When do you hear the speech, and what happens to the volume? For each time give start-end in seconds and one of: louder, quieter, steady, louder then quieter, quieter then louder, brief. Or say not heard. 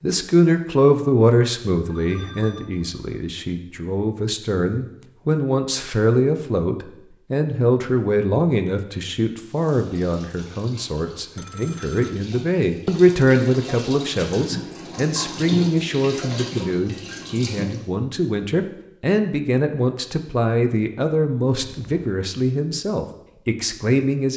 0.0-24.3 steady.